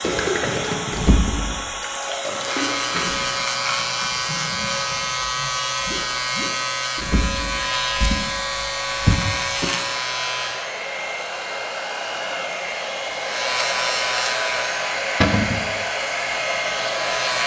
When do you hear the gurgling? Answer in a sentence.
The gurgling can be heard from 0.0 to 6.5 s.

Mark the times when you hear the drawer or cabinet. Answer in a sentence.
You can hear the drawer or cabinet from 0.9 to 1.6 s, from 7.0 to 9.7 s and from 15.2 to 15.7 s.